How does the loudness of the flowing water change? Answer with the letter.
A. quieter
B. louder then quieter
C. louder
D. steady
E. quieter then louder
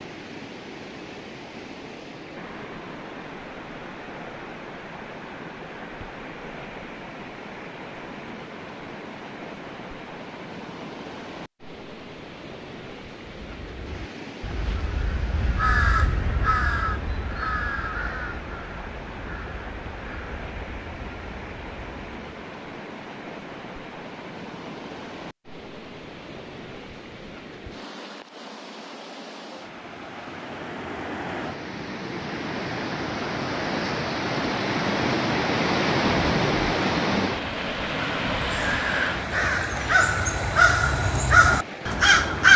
C.